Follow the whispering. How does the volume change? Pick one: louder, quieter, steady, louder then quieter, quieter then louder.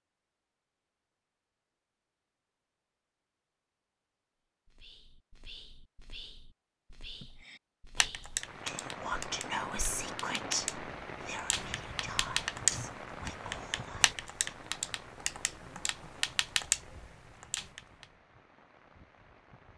louder then quieter.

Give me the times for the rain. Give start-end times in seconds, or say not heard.
8.3-19.7.